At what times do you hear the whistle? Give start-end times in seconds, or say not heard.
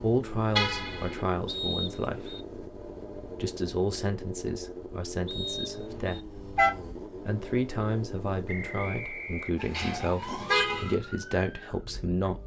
1.4-2.5, 5.2-6.2, 8.4-10.0.